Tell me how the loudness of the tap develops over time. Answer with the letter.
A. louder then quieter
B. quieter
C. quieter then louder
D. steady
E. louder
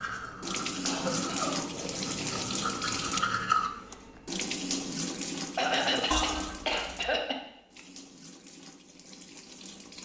B.